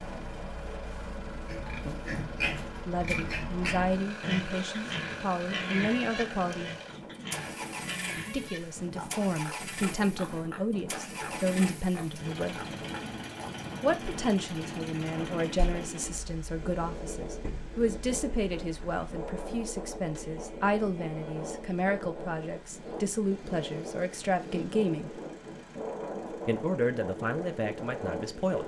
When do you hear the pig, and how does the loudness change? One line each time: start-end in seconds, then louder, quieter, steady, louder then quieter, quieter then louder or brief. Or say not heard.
1.4-13.5 quieter.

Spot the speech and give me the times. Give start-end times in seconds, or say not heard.
2.9-6.7, 8.2-12.6, 13.8-25.2, 26.4-28.6.